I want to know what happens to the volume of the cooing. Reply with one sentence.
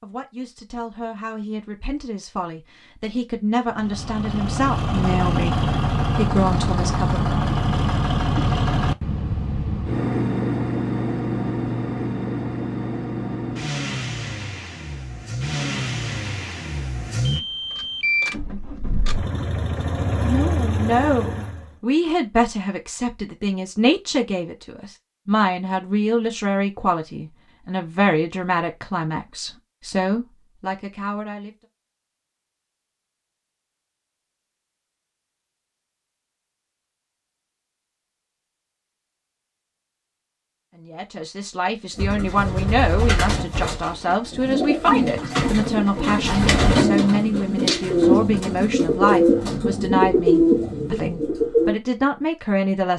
The volume of the cooing goes up.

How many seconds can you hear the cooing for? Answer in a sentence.
The cooing can be heard for 10 seconds in total.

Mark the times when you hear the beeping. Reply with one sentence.
You can hear the beeping from 17.2 to 18.4 s.